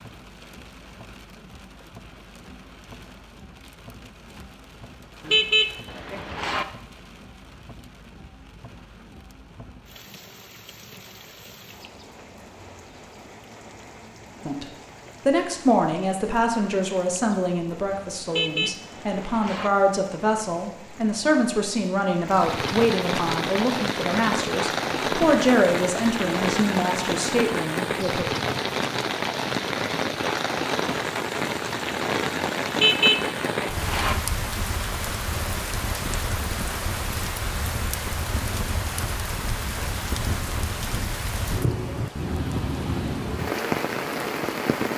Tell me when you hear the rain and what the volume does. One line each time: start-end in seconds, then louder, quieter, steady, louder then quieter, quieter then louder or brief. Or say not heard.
0.0-44.9 louder.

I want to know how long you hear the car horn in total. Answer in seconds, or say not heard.
4 s.